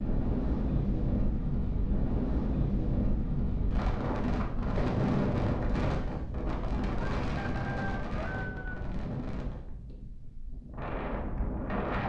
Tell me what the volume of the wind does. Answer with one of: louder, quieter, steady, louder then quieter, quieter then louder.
quieter.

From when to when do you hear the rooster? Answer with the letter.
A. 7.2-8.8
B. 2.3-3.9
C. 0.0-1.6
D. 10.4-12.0
A.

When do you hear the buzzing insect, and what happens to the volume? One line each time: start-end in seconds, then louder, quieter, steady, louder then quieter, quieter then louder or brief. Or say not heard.
not heard.